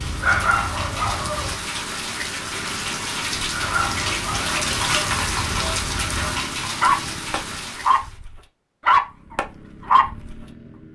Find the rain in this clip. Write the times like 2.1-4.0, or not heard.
0.0-8.2.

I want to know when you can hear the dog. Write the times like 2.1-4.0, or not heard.
0.0-1.6, 3.5-10.4.